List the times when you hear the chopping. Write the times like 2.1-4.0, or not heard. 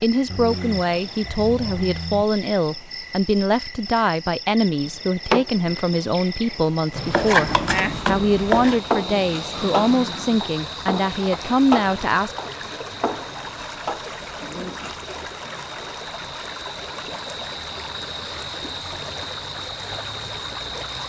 4.8-14.0.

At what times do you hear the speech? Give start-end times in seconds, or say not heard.
0.0-12.5.